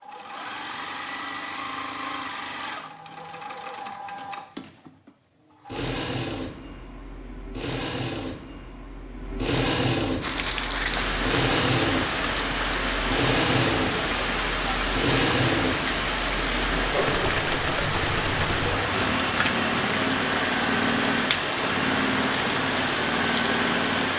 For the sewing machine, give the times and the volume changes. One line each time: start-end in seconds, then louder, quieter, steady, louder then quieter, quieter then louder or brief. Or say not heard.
0.0-24.1 louder.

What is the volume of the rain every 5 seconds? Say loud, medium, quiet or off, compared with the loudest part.
off, off, loud, loud, loud.